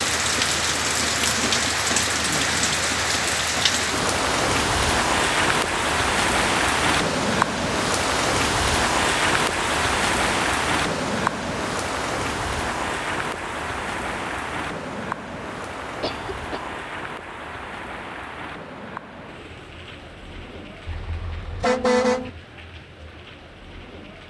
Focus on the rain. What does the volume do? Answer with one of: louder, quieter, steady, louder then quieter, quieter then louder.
quieter.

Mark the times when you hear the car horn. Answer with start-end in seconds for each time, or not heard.
20.9-22.3.